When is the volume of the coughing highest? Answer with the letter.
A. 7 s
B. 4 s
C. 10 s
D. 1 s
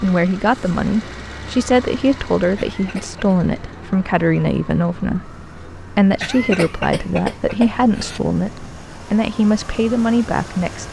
A.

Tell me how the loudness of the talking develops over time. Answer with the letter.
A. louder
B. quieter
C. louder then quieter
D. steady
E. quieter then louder
D.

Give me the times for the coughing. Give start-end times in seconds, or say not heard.
2.5-3.2, 6.2-8.2.